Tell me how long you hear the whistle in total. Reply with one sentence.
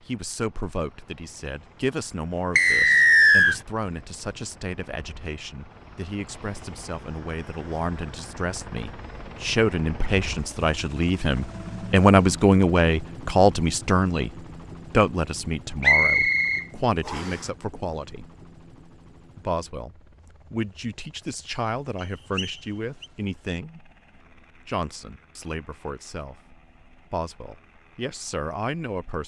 You can hear the whistle for 4 seconds altogether.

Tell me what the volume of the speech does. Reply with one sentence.
The loudness of the speech goes up, then down.